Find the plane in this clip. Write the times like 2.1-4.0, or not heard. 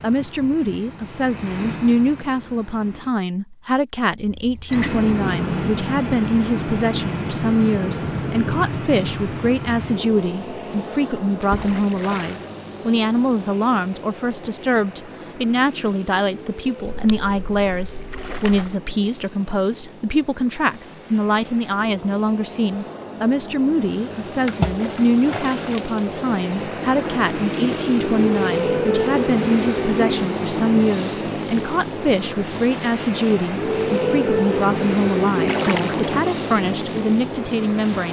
0.0-3.1, 4.7-38.0.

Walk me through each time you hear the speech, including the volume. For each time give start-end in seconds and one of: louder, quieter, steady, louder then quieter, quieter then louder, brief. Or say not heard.
0.0-38.0 steady.